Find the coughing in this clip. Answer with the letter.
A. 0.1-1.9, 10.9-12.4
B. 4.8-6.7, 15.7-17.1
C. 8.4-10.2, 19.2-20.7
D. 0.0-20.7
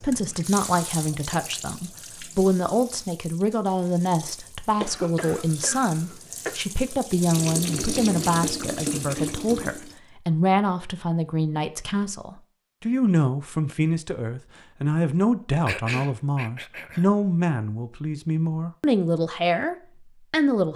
B.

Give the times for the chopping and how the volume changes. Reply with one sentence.
The chopping can't be heard in this clip.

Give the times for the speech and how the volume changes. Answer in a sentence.
The speech can be heard from 0.0 to 20.7 s, at a steady volume.